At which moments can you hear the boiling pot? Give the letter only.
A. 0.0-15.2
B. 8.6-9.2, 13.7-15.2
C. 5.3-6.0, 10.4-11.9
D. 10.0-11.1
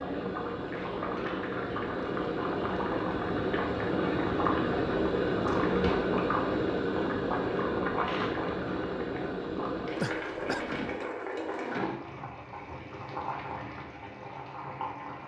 A.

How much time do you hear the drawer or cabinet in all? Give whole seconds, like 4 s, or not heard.
2 s.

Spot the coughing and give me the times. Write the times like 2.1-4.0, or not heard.
10.0-11.1.